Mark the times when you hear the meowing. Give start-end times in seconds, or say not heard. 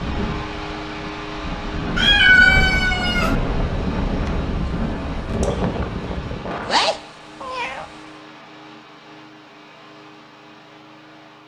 1.9-3.4, 6.7-7.8.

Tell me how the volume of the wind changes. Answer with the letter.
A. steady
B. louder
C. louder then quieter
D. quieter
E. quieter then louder
B.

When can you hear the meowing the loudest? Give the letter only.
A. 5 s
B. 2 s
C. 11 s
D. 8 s
B.